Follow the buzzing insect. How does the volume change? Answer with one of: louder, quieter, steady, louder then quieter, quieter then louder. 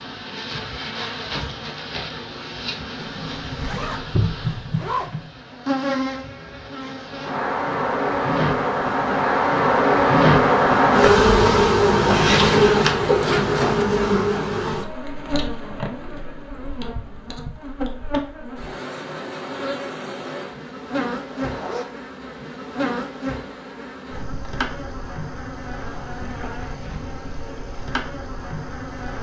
louder then quieter.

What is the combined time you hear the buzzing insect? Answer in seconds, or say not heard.
29 s.